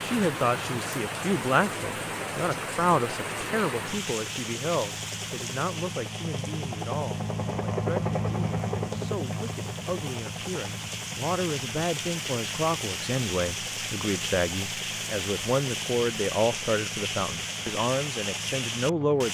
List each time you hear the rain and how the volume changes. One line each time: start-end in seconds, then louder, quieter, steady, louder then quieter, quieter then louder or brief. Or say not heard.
0.0-19.2 quieter then louder.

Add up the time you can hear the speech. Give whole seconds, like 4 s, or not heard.
19 s.